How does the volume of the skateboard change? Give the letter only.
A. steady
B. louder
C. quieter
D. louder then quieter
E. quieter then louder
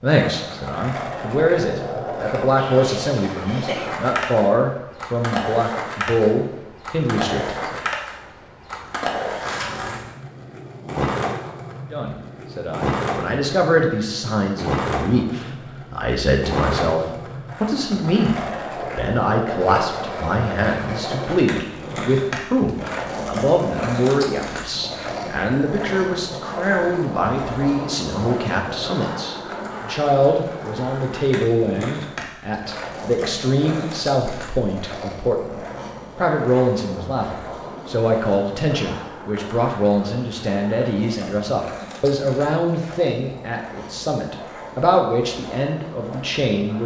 C.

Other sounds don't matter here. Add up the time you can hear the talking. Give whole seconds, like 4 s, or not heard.
43 s.